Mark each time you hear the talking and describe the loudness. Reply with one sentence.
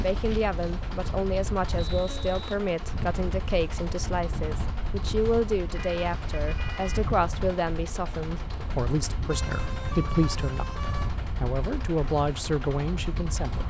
The talking can be heard from 0.0 to 13.6 s, at a steady volume.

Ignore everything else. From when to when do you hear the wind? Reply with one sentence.
The wind can be heard from 0.0 to 13.6 s.